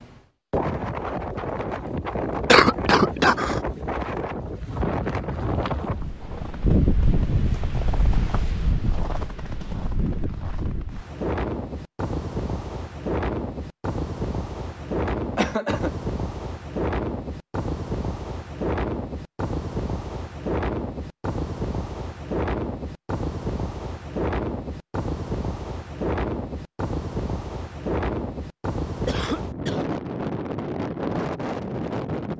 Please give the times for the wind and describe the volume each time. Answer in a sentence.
The wind can be heard from 0.0 to 32.3 s, at a steady volume.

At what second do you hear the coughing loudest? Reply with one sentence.
The volume of the coughing peaks at 3 seconds.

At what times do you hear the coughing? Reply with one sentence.
The coughing can be heard from 2.5 to 3.6 s, from 15.2 to 15.9 s and from 29.1 to 29.9 s.